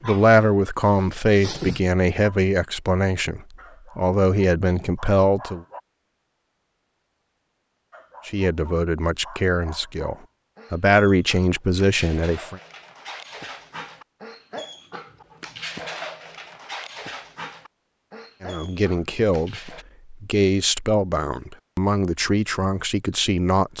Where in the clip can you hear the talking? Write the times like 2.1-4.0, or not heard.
0.0-5.7, 8.2-12.6, 18.4-23.7.